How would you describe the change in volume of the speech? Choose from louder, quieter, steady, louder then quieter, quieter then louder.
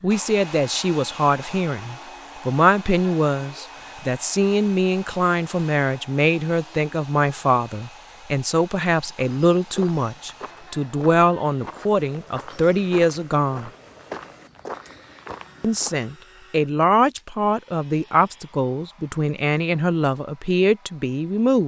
steady.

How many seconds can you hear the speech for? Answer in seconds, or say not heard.
20 s.